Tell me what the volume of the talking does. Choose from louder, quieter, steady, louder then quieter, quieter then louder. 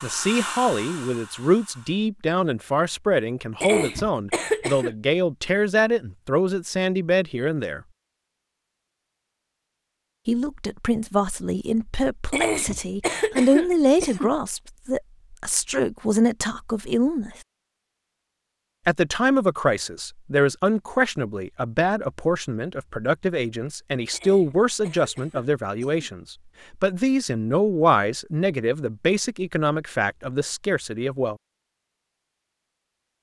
steady.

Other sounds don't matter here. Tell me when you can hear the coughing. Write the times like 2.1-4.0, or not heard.
3.6-4.9, 12.3-14.3, 24.1-26.1.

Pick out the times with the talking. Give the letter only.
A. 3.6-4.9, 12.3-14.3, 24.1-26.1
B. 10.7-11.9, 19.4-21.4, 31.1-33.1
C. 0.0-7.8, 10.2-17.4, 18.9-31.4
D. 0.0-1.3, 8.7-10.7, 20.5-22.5
C.